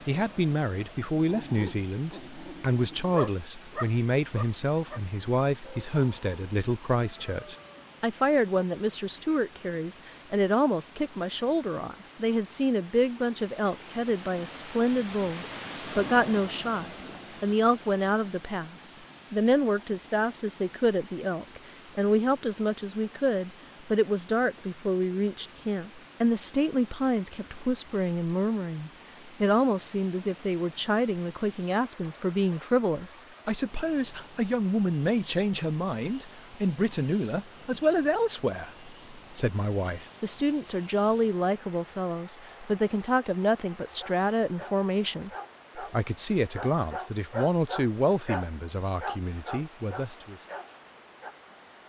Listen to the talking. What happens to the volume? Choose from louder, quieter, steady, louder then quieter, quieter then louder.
steady.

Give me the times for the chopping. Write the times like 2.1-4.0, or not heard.
not heard.